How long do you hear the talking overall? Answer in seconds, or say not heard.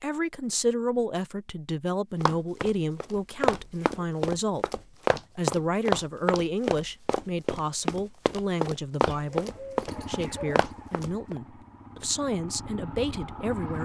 14 s.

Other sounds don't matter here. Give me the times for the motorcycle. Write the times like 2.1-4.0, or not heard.
9.8-13.8.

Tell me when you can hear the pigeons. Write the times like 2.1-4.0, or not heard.
9.1-10.8.